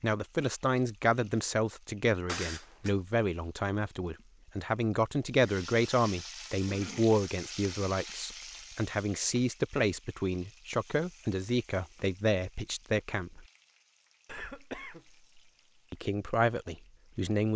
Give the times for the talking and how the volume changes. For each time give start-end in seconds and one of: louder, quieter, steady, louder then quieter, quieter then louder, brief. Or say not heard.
0.0-13.4 steady
15.9-17.5 brief.